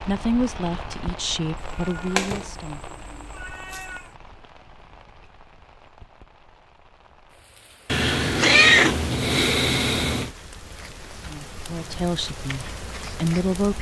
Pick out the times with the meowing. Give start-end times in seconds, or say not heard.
1.8-4.0, 7.8-10.3.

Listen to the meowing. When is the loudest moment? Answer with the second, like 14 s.
9 s.